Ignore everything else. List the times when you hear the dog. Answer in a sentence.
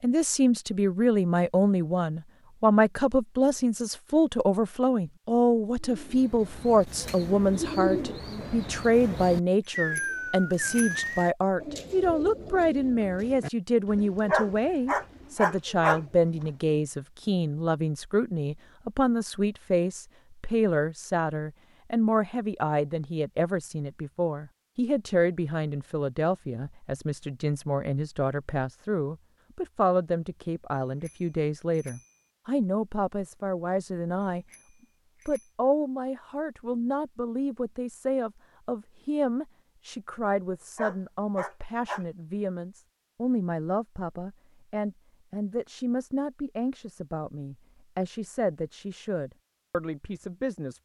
You can hear the dog from 14.2 to 16.0 s and from 40.8 to 42.0 s.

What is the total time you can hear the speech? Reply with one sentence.
The speech can be heard for 50 seconds in total.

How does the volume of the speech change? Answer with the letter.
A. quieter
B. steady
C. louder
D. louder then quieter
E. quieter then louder
A.